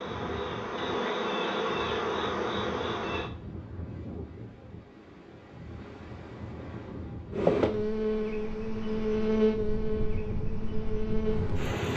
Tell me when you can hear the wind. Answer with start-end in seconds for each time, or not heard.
0.0-11.9.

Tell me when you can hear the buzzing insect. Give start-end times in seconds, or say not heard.
0.0-3.3, 7.3-11.9.